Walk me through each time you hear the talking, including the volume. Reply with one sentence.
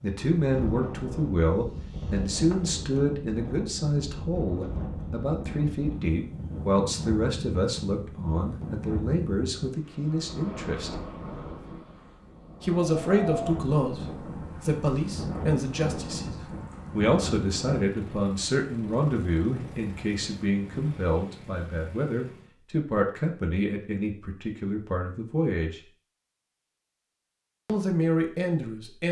The talking can be heard from 0.0 to 10.9 s, at a steady volume; from 12.6 to 25.8 s, at a steady volume; and briefly from 27.6 to 29.0 s.